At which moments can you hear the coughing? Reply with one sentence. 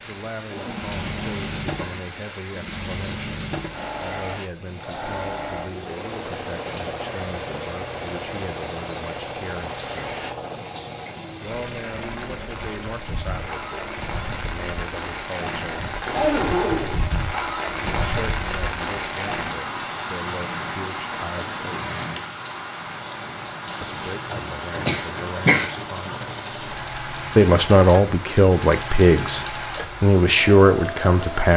The coughing can be heard from 24.9 to 25.8 s.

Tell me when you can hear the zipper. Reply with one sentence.
The zipper can be heard from 0.5 to 2.0 s, from 16.1 to 17.0 s and from 23.6 to 24.7 s.